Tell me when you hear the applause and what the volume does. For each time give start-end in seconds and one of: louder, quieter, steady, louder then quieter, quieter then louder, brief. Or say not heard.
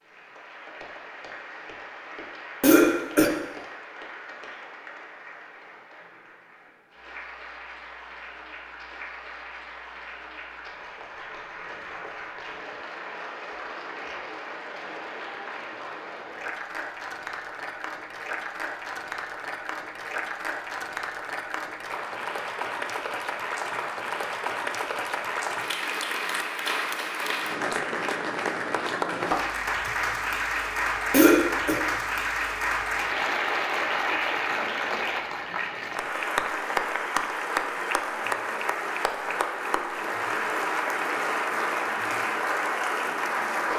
0.0-43.7 louder.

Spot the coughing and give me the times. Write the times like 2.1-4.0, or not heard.
2.6-3.3, 31.1-31.8.